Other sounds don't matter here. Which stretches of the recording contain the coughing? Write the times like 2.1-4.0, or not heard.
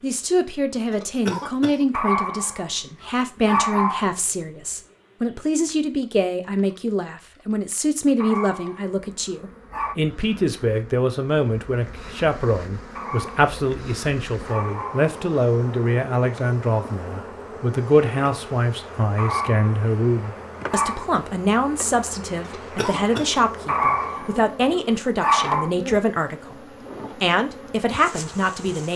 0.9-1.9, 22.4-23.4.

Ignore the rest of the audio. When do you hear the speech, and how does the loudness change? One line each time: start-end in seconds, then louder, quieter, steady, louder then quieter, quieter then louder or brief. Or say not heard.
0.0-28.9 steady.